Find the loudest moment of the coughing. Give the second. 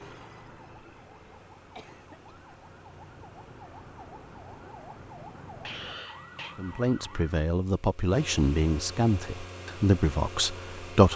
6 s.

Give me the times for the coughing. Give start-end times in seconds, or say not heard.
1.8-2.4, 5.6-6.5.